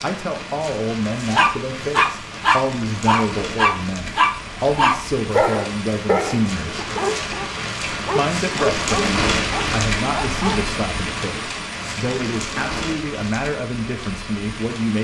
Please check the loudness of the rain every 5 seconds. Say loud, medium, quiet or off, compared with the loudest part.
medium, loud, loud.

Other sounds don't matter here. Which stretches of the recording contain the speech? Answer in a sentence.
You can hear the speech from 0.0 to 6.9 s and from 8.2 to 14.9 s.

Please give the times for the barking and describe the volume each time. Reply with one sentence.
You can hear the barking from 1.2 to 10.7 s, getting quieter.